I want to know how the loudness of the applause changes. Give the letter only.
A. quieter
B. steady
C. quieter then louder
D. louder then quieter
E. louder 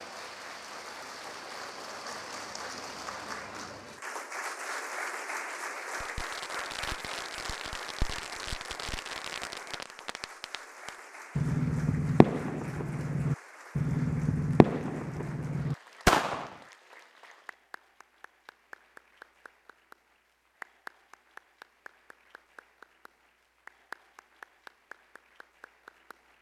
A.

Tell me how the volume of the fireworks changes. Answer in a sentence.
The loudness of the fireworks goes up.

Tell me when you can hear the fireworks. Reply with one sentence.
You can hear the fireworks from 5.9 to 16.6 s.